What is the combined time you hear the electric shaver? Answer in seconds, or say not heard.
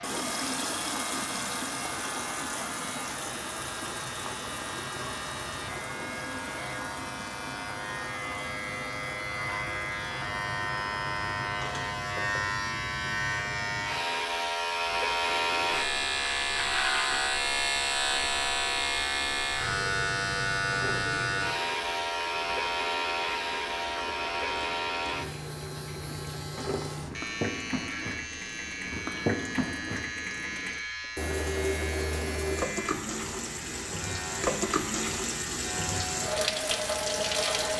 38 s.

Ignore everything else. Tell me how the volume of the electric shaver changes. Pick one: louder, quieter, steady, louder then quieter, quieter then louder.
louder then quieter.